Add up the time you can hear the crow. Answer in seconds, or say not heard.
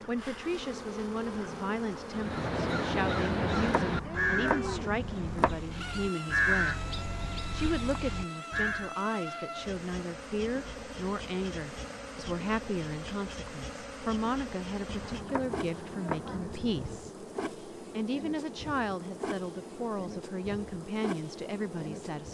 7 s.